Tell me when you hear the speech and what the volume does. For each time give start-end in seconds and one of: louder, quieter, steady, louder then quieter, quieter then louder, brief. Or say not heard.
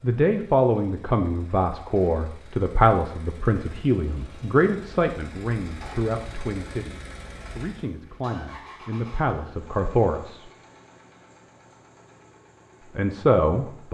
0.0-10.4 quieter then louder
12.9-13.8 brief.